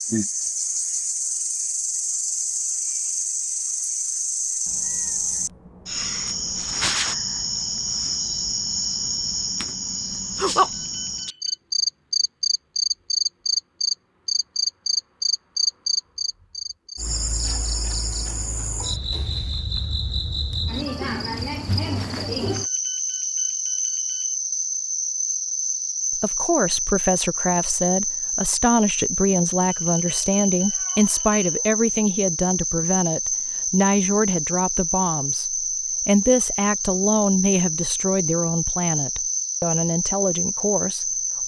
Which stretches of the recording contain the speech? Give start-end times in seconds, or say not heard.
26.1-41.1.